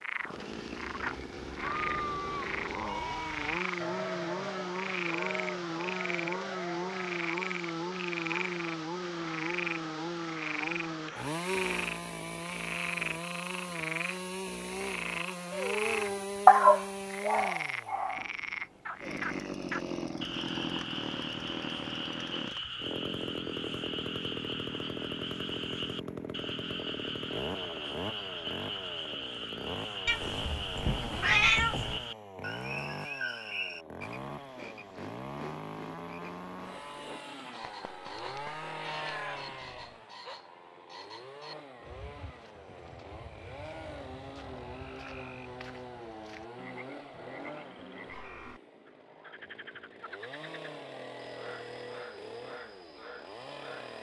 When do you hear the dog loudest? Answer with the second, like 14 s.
17 s.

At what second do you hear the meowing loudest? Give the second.
31 s.